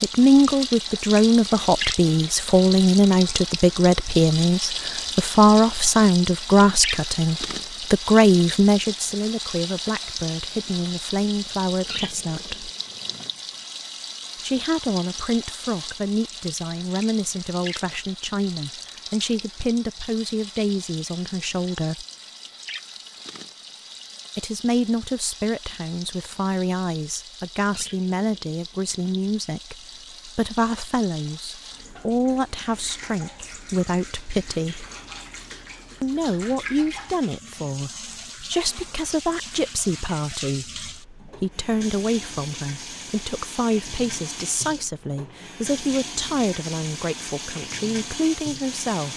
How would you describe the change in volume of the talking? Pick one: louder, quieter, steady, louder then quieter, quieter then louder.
quieter.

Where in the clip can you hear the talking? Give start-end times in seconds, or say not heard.
0.0-12.7, 14.4-22.1, 24.4-34.9, 36.0-49.1.